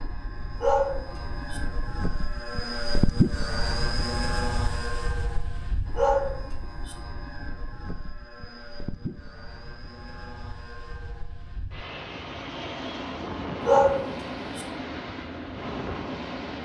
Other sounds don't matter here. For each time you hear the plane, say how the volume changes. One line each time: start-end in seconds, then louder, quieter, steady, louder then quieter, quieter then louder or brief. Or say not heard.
0.0-16.6 quieter then louder.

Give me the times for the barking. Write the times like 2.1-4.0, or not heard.
0.6-1.6, 6.0-7.0, 13.6-14.7.